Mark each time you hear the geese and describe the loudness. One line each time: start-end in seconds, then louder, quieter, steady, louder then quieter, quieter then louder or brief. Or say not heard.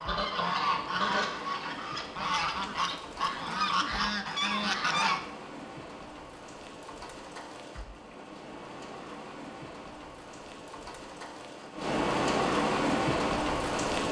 0.0-5.2 quieter then louder.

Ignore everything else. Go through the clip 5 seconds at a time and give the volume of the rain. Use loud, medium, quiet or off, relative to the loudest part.
quiet, quiet, loud.